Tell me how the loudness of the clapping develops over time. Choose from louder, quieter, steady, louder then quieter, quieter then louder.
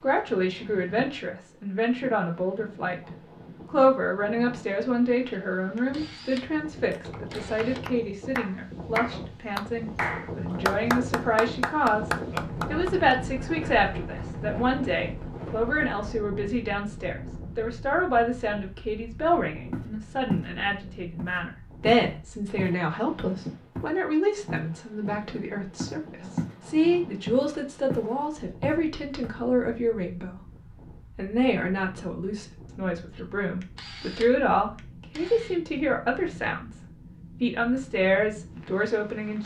louder.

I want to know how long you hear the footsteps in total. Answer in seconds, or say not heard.
8 s.